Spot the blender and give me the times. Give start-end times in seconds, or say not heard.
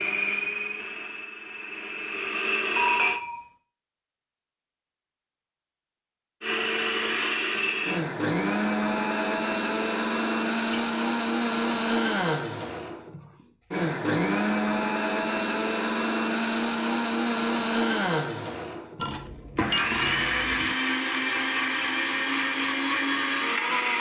0.0-3.2, 6.4-23.9.